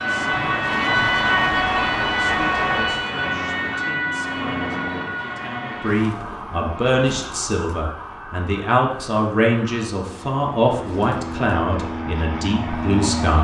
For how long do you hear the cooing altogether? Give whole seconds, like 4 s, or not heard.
not heard.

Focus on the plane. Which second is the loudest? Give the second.
13 s.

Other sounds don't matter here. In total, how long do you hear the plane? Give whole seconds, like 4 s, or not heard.
5 s.